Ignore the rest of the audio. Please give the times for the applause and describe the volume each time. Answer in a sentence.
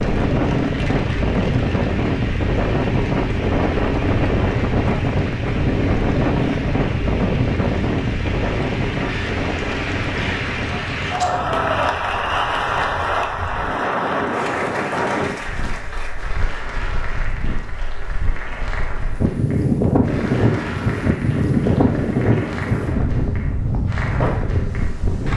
The applause can be heard from 0.0 to 25.3 s, getting louder then quieter.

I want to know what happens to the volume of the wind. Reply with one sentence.
The volume of the wind goes down, then up.